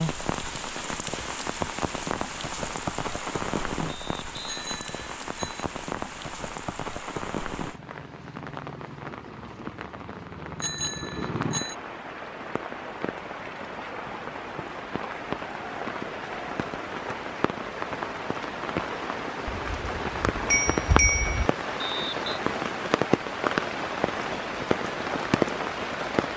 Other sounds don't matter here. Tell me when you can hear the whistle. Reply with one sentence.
You can hear the whistle from 3.9 to 4.7 s and from 21.8 to 22.3 s.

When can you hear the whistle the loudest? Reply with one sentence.
The loudest moment of the whistle is at 22 seconds.